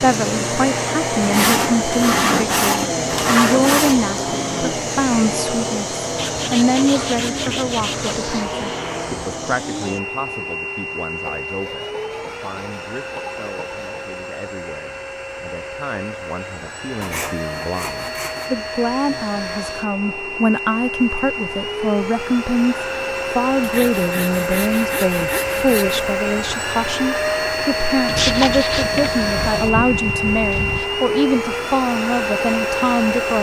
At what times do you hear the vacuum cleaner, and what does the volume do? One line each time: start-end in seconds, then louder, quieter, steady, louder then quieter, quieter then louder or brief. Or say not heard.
0.0-33.3 quieter then louder.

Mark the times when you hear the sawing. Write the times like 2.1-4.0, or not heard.
1.2-4.0, 6.2-8.2, 11.2-14.1, 17.0-18.5, 23.6-26.1, 28.1-30.9.